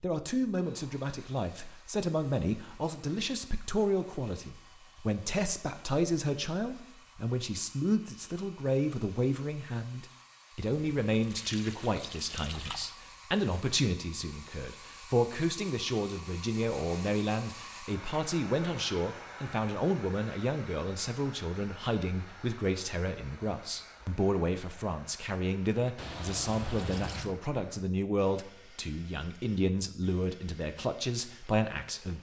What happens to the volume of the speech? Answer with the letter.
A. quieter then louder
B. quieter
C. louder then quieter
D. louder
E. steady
E.